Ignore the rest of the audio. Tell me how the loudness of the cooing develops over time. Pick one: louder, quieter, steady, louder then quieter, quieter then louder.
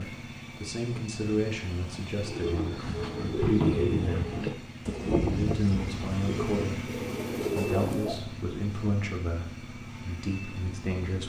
quieter then louder.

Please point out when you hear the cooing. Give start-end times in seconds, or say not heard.
2.2-8.2.